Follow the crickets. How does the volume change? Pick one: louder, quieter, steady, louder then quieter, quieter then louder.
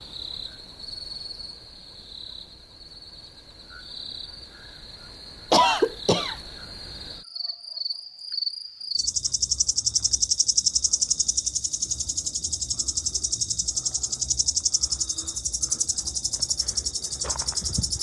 louder.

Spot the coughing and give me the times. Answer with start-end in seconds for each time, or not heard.
5.5-6.3.